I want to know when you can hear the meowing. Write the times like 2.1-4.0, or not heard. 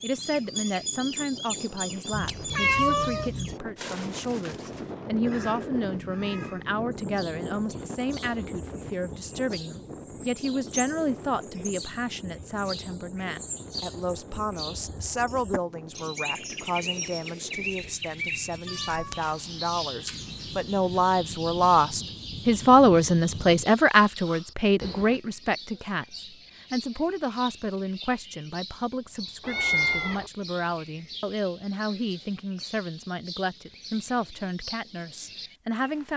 2.1-3.5, 18.6-19.3, 29.4-30.3.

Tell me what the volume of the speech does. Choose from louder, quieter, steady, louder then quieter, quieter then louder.
louder then quieter.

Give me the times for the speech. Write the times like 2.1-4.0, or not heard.
0.0-36.1.